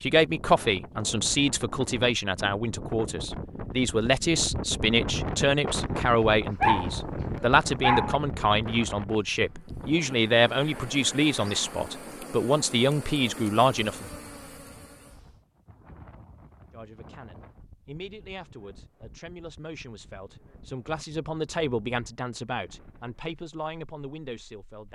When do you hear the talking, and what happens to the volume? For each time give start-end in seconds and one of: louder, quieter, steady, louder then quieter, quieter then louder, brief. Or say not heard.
0.0-14.1 steady
16.7-24.9 louder then quieter.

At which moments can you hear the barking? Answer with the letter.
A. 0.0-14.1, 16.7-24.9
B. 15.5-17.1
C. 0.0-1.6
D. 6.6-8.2
D.